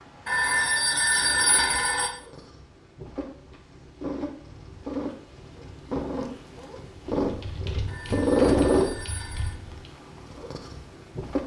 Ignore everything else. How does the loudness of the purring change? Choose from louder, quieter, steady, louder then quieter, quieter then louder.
louder then quieter.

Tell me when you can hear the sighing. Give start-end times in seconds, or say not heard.
not heard.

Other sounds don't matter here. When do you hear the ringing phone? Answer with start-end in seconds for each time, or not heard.
0.2-2.1, 7.8-9.6.